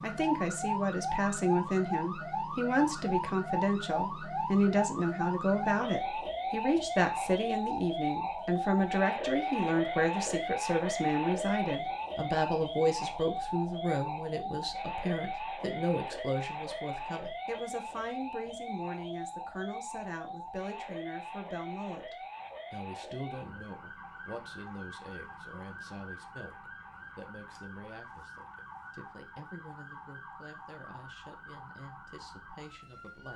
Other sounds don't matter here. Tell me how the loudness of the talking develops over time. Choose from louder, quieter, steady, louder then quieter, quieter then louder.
quieter.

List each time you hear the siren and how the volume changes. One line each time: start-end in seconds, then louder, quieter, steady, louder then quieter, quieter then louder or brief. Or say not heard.
0.0-33.3 quieter.